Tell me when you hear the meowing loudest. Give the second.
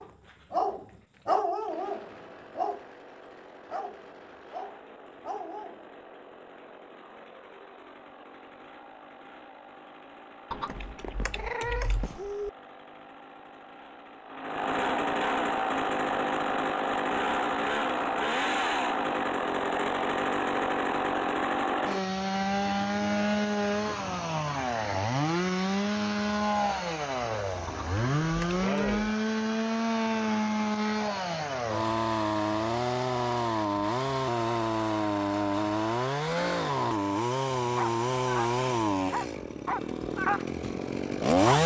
12 s.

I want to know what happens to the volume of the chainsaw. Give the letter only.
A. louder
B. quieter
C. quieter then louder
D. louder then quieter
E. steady
A.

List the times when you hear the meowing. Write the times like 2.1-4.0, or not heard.
10.5-12.5, 27.6-29.0.